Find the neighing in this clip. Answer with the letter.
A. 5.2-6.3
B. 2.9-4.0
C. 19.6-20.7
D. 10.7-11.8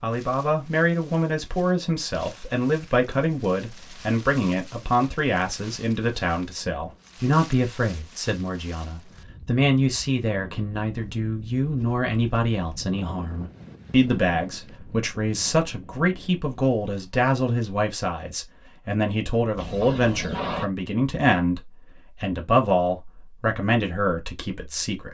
C.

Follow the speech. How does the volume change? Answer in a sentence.
The loudness of the speech stays about the same.